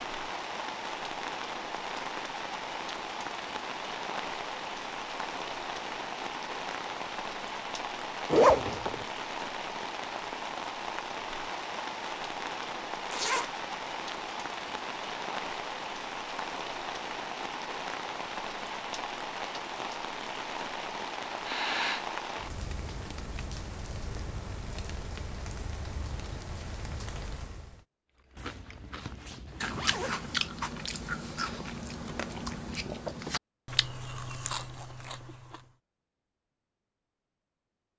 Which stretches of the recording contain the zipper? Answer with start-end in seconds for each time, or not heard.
8.2-9.1, 13.1-13.5, 28.4-30.4.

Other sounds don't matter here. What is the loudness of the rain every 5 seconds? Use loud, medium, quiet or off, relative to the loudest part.
loud, loud, loud, loud, loud, medium, off, off.